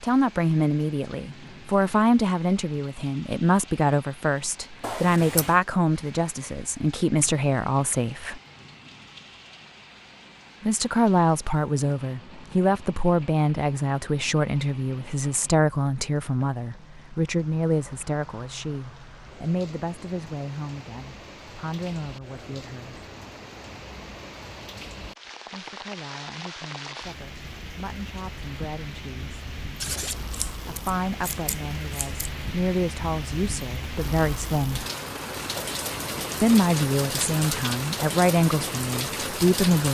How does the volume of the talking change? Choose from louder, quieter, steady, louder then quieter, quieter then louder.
quieter then louder.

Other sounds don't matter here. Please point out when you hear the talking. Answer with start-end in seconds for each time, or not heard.
0.0-8.4, 10.6-23.1, 25.4-29.4, 30.6-34.9, 36.4-39.8.